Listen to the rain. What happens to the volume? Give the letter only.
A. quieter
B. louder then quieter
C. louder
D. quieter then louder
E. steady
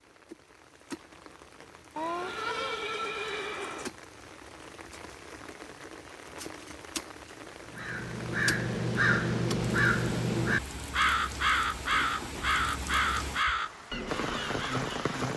C.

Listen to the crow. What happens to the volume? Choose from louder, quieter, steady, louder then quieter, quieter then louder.
quieter.